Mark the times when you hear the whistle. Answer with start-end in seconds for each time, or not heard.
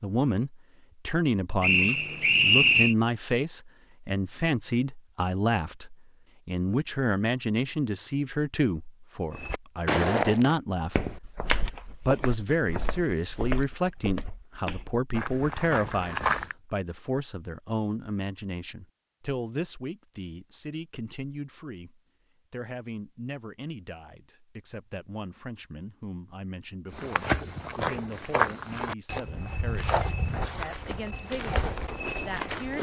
1.6-3.0.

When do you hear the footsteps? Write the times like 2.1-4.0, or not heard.
9.3-16.6, 26.9-32.7.